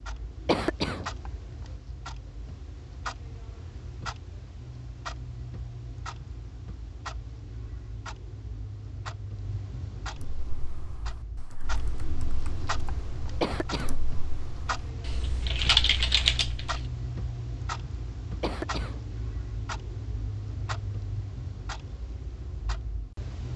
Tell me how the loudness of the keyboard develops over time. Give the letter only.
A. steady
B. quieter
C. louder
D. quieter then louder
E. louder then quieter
C.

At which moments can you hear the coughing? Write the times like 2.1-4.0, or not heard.
0.5-1.1, 13.4-14.0, 18.4-19.0.